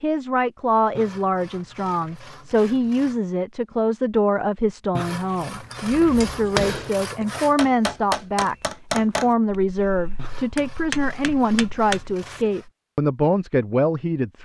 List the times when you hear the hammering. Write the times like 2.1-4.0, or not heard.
5.7-12.3.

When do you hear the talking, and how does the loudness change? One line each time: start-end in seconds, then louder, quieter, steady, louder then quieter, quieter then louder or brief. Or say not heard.
0.0-14.4 steady.